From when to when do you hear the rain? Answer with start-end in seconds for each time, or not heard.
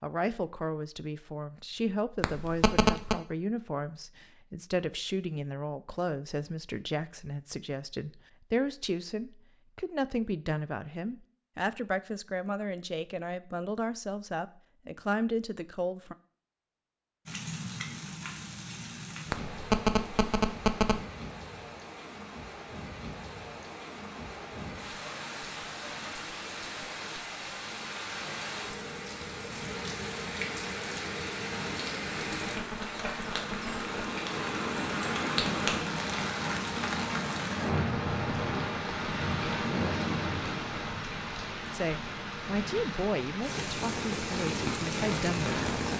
17.2-45.9.